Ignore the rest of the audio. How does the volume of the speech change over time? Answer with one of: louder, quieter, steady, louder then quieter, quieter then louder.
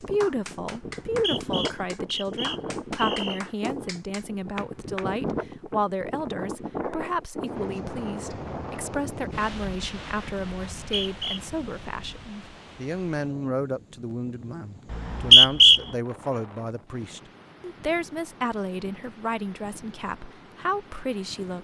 steady.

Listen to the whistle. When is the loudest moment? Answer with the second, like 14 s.
15 s.